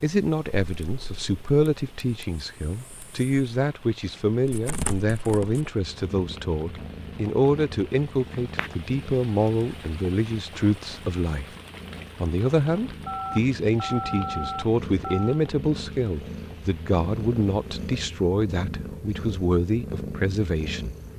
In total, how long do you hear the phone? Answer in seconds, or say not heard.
2 s.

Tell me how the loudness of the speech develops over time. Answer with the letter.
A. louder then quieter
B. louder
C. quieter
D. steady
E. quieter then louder
D.